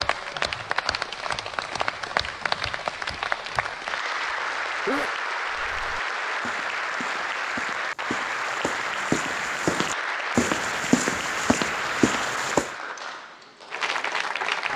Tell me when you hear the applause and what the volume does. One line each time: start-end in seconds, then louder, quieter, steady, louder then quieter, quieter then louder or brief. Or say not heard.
0.0-14.7 steady.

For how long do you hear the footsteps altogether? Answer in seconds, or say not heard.
7 s.